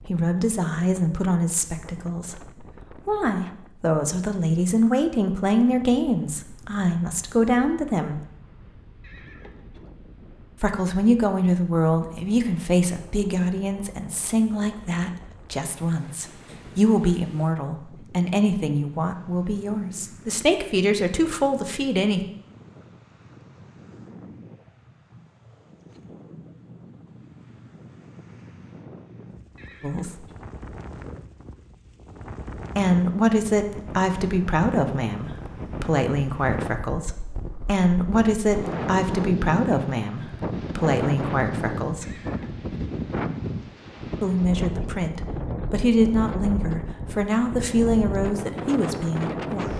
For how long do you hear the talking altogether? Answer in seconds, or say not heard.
35 s.